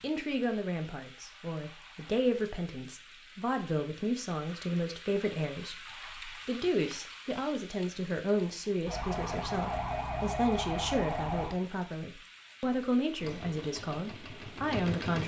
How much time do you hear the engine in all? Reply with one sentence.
The engine can be heard for 2 seconds in total.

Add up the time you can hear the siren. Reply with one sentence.
You can hear the siren for 3 seconds altogether.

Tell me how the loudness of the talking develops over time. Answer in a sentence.
The volume of the talking stays about the same.